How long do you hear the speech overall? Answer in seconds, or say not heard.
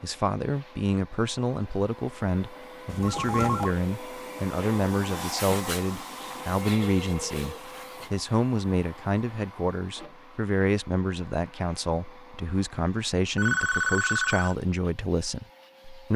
16 s.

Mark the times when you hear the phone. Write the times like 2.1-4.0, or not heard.
2.9-3.8, 6.8-8.2, 13.3-14.6.